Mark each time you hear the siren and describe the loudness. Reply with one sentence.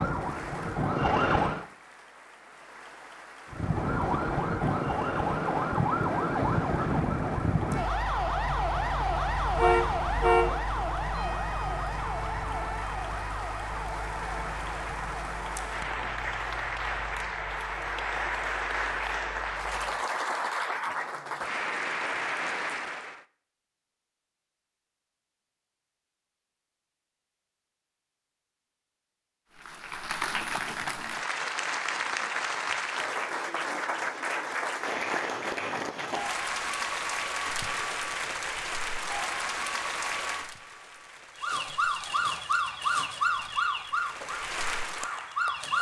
You can hear the siren briefly from 0.0 to 1.6 s; from 3.5 to 20.1 s, getting quieter; and from 41.4 to 45.7 s, getting quieter.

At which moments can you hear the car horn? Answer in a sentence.
The car horn can be heard from 9.6 to 10.6 s.